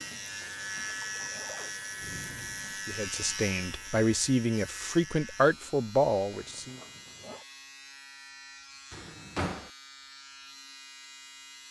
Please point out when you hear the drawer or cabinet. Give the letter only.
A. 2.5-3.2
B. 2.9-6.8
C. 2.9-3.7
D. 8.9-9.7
D.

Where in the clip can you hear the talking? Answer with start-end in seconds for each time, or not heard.
2.9-6.8.